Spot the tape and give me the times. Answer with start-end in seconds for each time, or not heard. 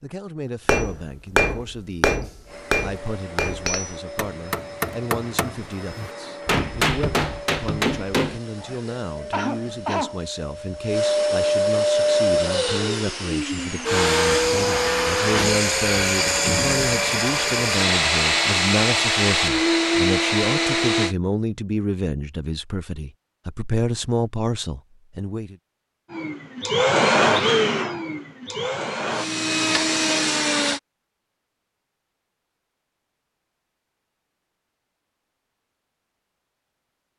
not heard.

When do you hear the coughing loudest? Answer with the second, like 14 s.
10 s.